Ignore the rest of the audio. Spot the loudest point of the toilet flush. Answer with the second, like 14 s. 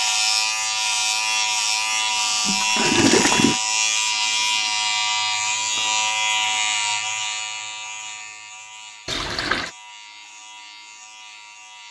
3 s.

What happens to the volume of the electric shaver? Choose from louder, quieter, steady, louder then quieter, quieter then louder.
quieter.